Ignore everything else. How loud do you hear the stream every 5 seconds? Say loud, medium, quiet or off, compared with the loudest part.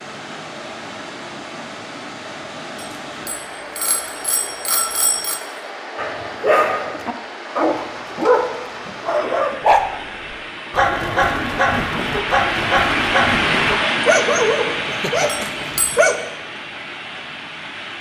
medium, medium, loud, medium.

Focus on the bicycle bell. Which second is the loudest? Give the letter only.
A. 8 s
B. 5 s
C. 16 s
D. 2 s
B.